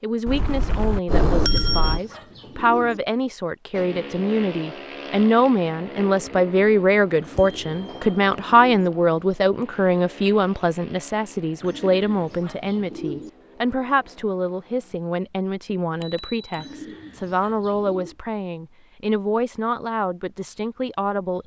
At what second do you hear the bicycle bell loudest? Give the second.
1 s.